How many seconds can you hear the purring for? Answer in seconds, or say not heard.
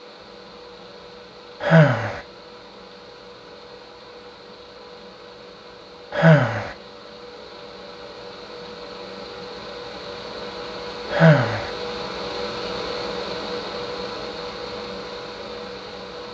not heard.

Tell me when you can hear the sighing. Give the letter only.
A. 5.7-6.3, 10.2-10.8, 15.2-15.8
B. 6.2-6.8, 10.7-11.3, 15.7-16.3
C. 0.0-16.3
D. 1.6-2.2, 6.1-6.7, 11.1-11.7
D.